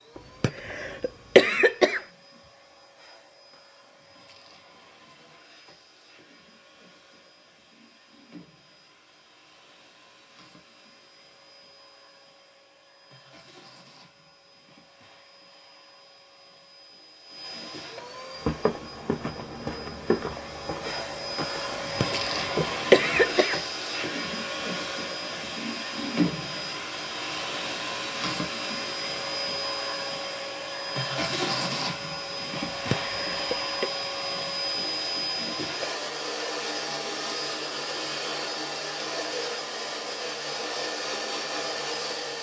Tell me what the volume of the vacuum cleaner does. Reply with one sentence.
The volume of the vacuum cleaner goes up.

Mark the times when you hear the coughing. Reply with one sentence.
The coughing can be heard from 0.1 to 2.0 s, from 21.7 to 23.6 s and from 32.7 to 33.9 s.